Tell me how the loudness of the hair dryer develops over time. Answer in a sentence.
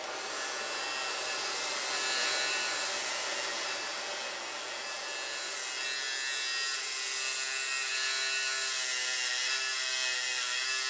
The loudness of the hair dryer goes down.